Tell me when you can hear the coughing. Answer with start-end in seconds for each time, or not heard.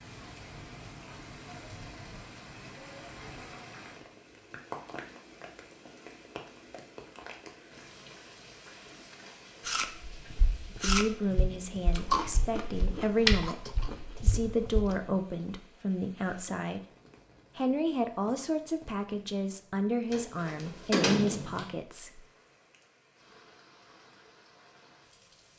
not heard.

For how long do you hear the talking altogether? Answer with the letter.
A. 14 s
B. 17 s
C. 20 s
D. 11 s
D.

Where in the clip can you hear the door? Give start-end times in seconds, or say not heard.
20.1-21.6.